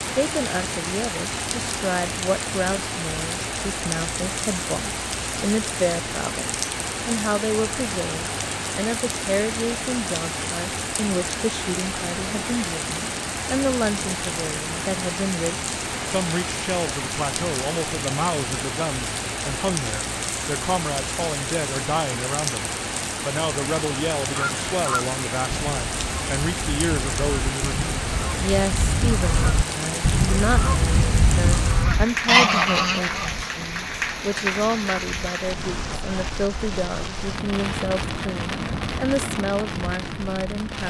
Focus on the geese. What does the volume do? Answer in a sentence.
The volume of the geese goes up.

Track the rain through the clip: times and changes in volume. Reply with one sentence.
The rain can be heard from 0.0 to 40.8 s, at a steady volume.